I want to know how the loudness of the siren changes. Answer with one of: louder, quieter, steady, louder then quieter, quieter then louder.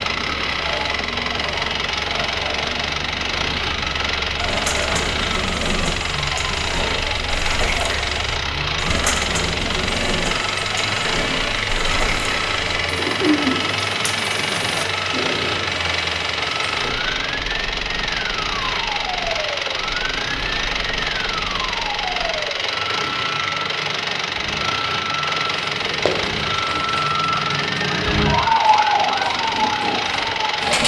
louder.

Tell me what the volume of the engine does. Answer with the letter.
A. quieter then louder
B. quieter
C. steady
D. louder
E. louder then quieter
C.